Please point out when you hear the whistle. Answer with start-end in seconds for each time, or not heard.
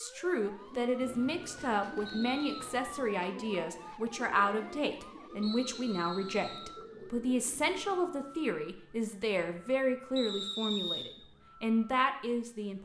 1.0-2.6, 5.4-6.7, 10.2-11.1.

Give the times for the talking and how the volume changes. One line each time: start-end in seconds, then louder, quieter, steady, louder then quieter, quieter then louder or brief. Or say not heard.
0.0-12.8 steady.